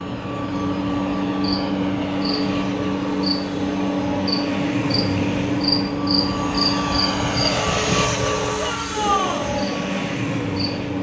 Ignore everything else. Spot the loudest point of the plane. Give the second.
8 s.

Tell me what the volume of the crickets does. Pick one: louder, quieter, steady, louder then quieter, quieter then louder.
quieter.